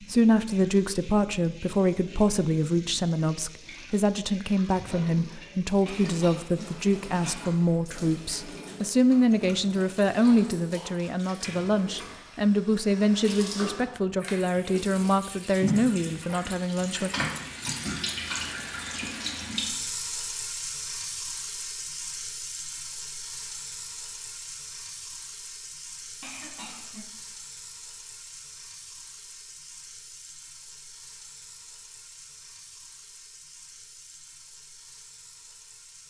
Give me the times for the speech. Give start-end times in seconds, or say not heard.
0.0-17.1.